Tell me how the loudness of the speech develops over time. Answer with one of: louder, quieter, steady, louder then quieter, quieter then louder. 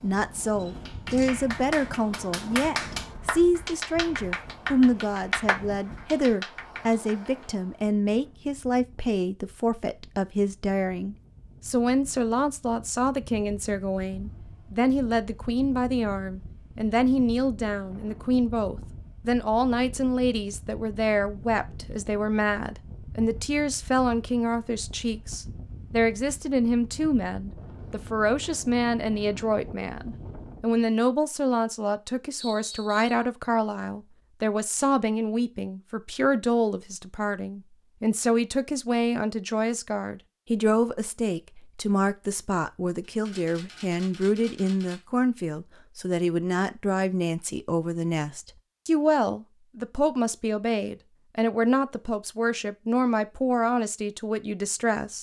steady.